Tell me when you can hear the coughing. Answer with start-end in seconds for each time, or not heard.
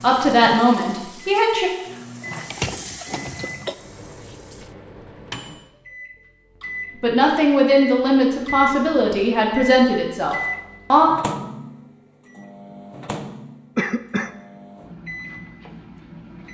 2.5-3.8, 13.8-14.3.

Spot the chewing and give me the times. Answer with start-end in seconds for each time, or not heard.
not heard.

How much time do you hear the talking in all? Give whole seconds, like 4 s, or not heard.
6 s.